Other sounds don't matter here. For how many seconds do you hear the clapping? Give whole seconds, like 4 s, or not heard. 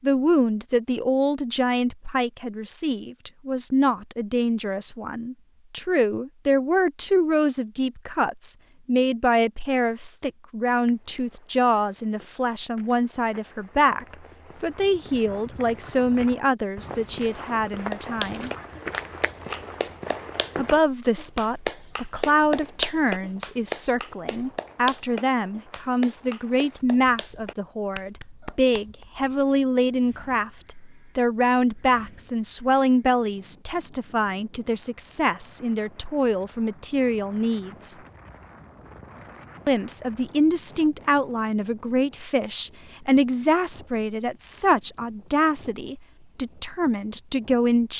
11 s.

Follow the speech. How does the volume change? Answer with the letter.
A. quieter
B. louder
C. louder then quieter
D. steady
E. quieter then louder
D.